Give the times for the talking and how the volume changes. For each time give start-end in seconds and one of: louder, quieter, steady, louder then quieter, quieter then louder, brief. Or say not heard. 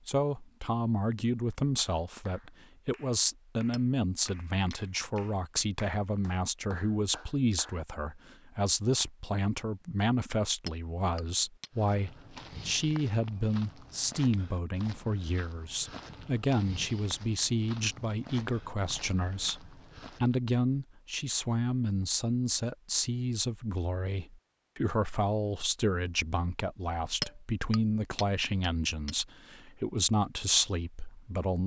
0.1-31.6 steady.